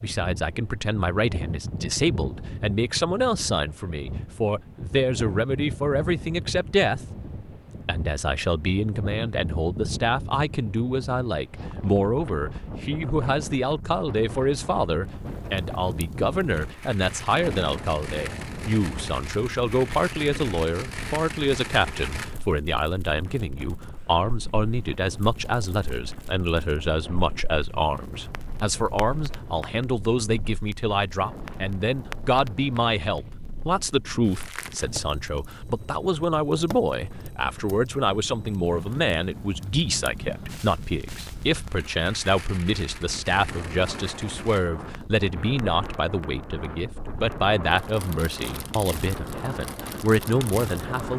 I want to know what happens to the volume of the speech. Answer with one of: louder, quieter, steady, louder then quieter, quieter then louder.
steady.